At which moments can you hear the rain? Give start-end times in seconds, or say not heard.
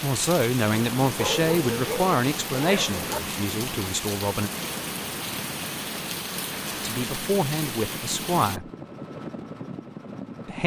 0.0-8.6.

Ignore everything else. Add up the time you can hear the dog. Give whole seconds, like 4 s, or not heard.
2 s.